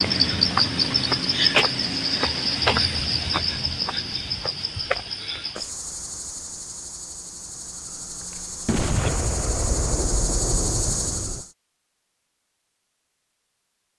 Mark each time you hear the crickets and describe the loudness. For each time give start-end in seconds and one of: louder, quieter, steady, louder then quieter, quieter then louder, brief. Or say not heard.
0.0-11.5 quieter then louder.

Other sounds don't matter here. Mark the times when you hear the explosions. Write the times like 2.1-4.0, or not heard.
8.7-11.4.